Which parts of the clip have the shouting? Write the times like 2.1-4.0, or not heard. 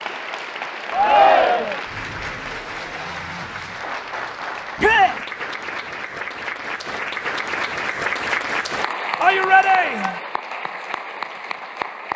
0.9-1.8, 4.8-5.2, 9.2-10.2.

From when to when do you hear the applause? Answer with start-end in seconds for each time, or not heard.
0.0-12.1.